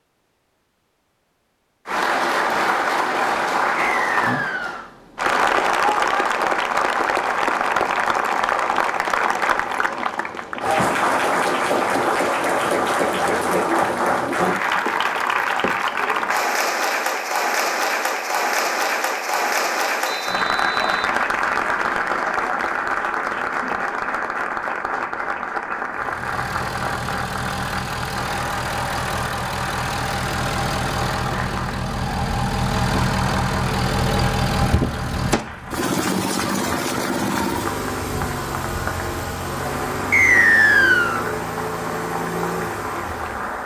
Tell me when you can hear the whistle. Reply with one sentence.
You can hear the whistle from 3.8 to 4.8 s, from 20.1 to 21.1 s and from 40.1 to 41.2 s.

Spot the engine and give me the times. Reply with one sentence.
The engine can be heard from 25.9 to 43.6 s.